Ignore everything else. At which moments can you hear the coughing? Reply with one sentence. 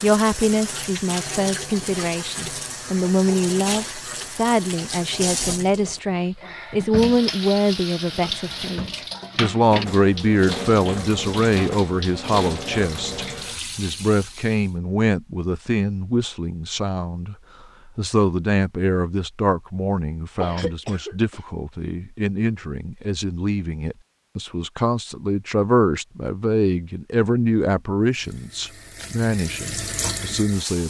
You can hear the coughing from 20.4 to 21.4 s.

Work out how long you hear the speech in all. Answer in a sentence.
You can hear the speech for 30 seconds altogether.